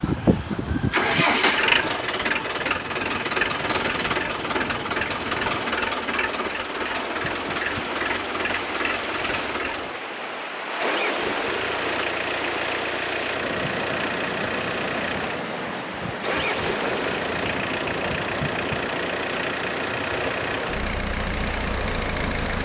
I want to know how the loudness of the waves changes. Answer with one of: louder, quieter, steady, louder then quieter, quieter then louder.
louder.